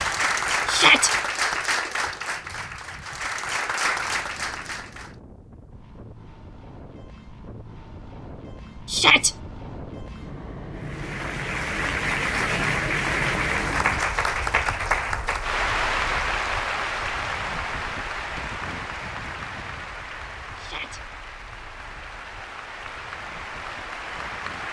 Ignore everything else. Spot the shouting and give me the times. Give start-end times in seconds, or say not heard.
0.7-1.1, 8.8-9.3, 20.6-21.0.